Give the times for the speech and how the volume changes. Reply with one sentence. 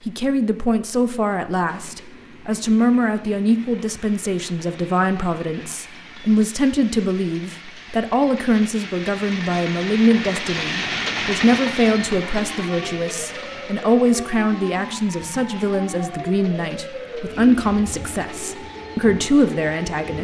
The speech can be heard from 0.1 to 20.1 s, at a steady volume.